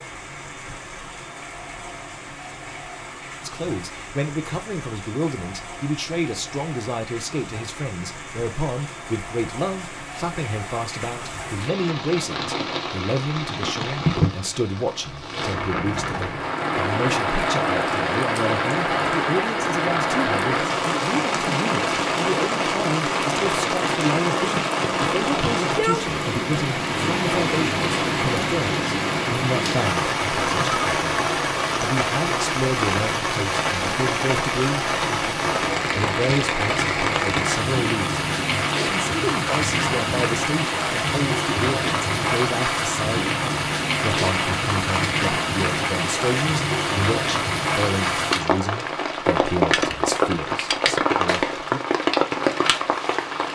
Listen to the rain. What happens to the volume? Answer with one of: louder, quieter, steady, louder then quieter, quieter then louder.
louder.